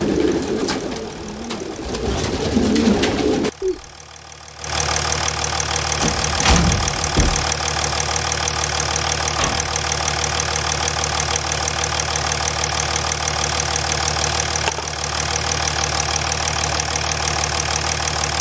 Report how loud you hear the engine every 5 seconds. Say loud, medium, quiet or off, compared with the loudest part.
medium, loud, loud, loud.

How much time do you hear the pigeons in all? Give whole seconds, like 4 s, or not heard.
4 s.